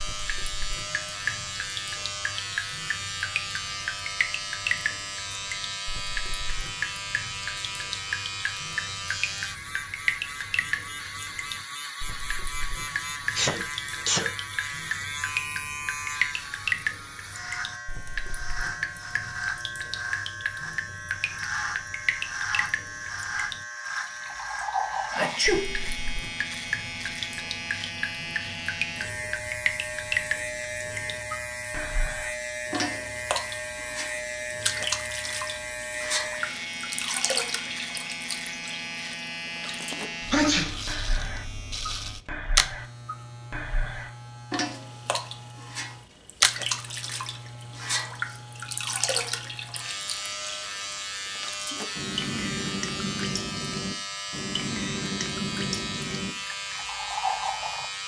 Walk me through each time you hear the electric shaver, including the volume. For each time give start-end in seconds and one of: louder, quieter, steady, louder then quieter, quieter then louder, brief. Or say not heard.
0.0-58.0 steady.